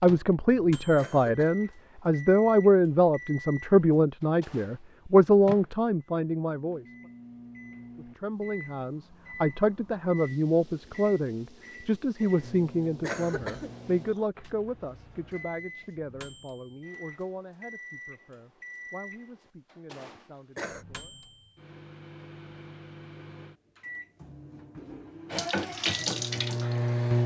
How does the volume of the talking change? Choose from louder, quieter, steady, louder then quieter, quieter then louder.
quieter.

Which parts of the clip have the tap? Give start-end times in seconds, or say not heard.
25.3-27.2.